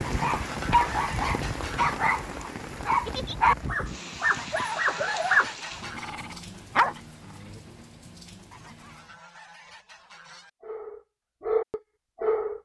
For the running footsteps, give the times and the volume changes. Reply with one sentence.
You can't hear the running footsteps here.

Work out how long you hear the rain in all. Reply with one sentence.
You can hear the rain for 9 seconds altogether.